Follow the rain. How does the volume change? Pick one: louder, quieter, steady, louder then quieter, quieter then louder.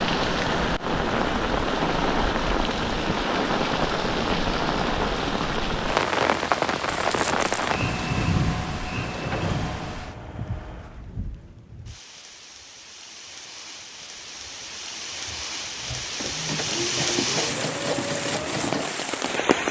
quieter then louder.